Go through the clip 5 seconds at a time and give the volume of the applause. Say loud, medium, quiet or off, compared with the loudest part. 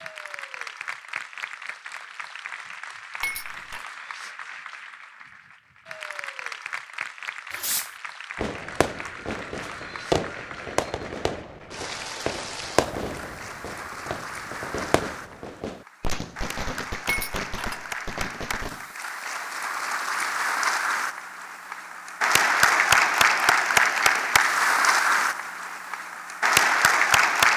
quiet, quiet, quiet, quiet, loud, loud.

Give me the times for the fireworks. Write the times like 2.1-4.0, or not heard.
7.5-18.9.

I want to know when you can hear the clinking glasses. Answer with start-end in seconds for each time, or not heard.
3.2-3.9, 17.1-17.9.